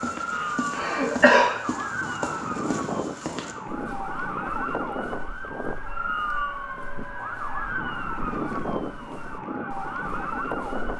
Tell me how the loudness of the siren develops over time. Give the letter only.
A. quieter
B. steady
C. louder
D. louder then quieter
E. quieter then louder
B.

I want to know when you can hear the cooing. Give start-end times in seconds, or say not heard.
not heard.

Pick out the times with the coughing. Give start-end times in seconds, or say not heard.
0.3-1.6.